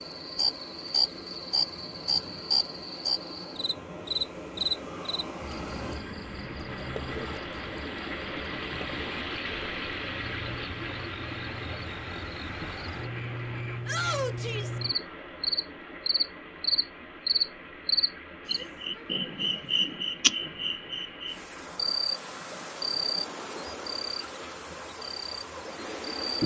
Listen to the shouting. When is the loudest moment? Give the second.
14 s.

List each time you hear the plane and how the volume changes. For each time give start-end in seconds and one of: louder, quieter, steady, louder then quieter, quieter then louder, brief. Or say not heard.
not heard.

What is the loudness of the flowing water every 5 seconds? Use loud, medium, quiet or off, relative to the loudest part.
medium, loud, loud, medium, medium, medium.